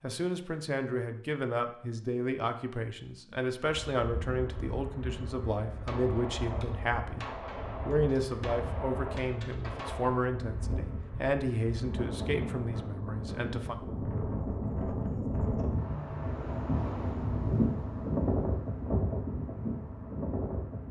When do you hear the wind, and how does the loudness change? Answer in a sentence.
You can hear the wind from 3.6 to 20.8 s, getting louder.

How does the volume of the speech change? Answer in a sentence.
The loudness of the speech stays about the same.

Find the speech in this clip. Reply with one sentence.
You can hear the speech from 0.0 to 13.8 s.